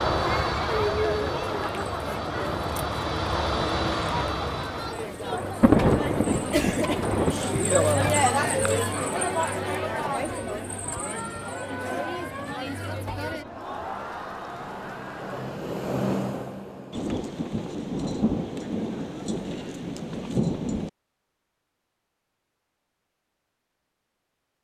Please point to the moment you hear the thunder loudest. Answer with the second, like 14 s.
6 s.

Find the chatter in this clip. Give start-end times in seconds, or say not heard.
0.1-15.7.